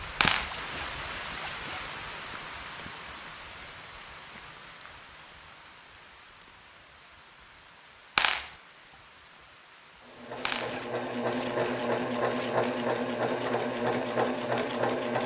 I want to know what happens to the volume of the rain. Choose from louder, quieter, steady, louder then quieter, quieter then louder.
quieter.